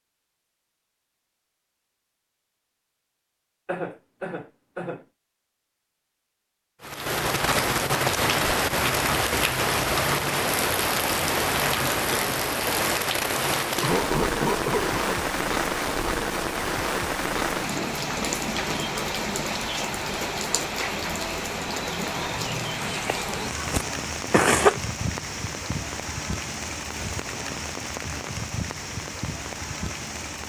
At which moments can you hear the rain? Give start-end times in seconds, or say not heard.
6.8-30.4.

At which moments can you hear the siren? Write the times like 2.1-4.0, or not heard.
not heard.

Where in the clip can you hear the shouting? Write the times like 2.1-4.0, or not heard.
not heard.